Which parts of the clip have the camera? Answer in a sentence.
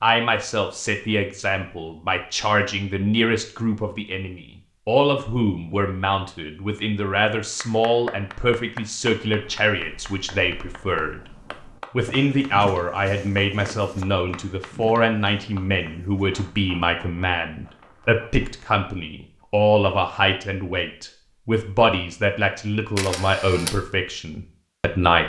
You can hear the camera from 22.9 to 23.8 s.